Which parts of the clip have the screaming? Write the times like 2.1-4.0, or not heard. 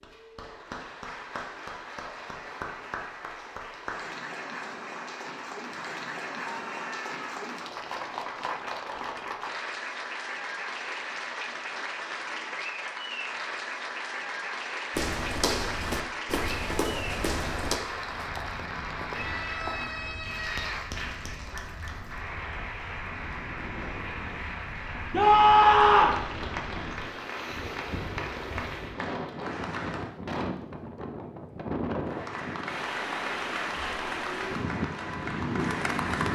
6.6-7.2, 19.1-20.9, 25.1-26.2.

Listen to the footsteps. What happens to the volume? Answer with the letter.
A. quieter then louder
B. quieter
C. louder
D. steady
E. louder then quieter
B.